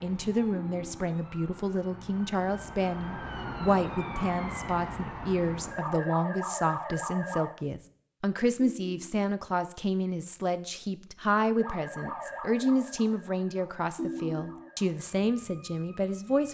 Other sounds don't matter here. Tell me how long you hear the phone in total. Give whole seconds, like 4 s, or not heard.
2 s.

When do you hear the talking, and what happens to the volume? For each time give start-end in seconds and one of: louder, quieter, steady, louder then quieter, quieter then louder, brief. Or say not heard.
0.0-16.4 steady.